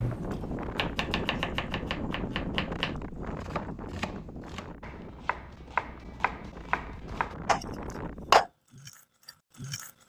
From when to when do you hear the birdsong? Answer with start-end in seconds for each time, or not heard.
not heard.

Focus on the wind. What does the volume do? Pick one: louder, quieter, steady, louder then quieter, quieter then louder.
quieter then louder.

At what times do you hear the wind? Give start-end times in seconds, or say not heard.
0.0-8.5.